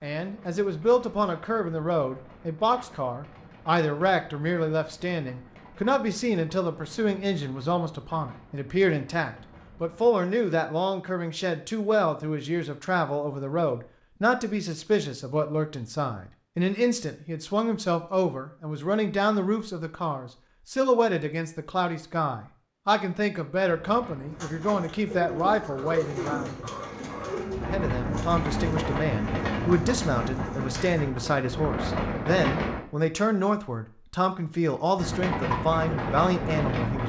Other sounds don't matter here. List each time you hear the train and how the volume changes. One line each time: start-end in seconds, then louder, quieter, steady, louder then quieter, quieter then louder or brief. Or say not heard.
0.1-10.1 steady
23.6-32.9 louder
35.0-37.0 brief.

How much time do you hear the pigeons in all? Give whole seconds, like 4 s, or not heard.
7 s.